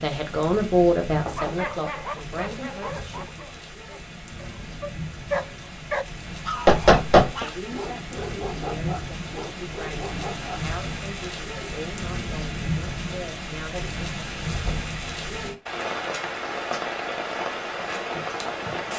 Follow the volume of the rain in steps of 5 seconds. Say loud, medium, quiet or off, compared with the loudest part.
medium, medium, loud, loud.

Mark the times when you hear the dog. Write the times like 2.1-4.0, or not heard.
1.4-10.7.